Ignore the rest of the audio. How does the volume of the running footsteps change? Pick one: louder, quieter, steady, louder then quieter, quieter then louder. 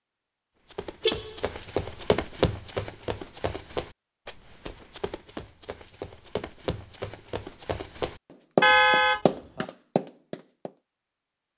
quieter then louder.